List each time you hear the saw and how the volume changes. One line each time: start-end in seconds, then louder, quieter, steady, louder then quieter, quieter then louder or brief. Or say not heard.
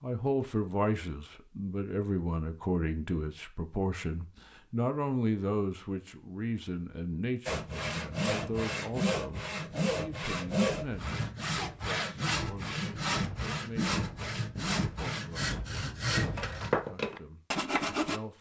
7.5-18.2 steady.